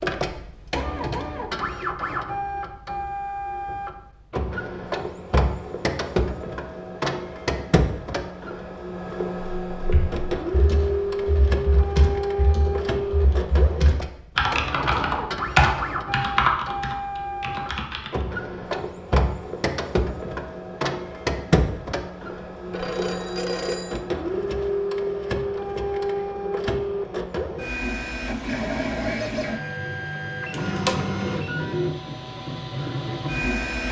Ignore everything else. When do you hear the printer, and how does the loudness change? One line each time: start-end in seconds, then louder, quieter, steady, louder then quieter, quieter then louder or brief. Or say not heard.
0.0-33.8 steady.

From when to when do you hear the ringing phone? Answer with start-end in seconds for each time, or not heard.
22.7-24.0.